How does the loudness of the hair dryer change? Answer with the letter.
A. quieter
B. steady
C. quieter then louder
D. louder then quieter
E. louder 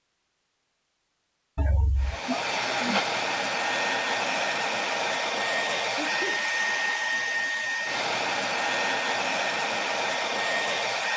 B.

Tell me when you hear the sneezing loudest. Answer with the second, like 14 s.
3 s.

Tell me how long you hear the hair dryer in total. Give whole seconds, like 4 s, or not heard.
9 s.